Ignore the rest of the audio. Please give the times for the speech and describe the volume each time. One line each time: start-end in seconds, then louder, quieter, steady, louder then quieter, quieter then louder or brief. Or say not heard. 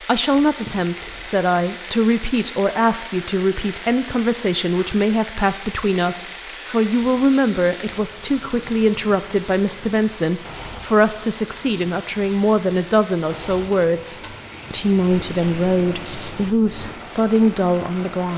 0.1-18.3 steady.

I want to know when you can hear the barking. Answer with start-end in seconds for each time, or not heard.
not heard.